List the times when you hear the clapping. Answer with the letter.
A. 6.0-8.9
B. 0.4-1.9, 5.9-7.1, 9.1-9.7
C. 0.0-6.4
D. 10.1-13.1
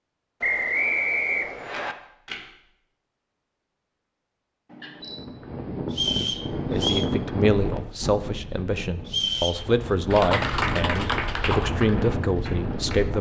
D.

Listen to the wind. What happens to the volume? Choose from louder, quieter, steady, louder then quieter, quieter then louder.
quieter then louder.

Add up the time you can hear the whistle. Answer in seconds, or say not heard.
3 s.